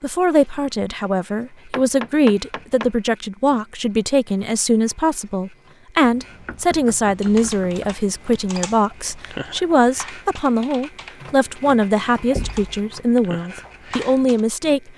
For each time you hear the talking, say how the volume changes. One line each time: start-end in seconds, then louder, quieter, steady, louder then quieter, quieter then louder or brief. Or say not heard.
0.0-14.9 steady.